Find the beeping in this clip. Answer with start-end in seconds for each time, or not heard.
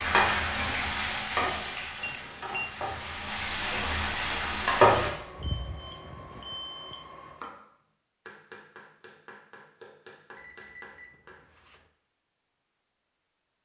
2.0-2.7, 5.0-7.5, 10.3-11.9.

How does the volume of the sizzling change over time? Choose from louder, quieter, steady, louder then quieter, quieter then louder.
quieter then louder.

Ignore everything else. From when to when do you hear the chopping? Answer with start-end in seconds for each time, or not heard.
7.0-7.6, 8.2-11.8.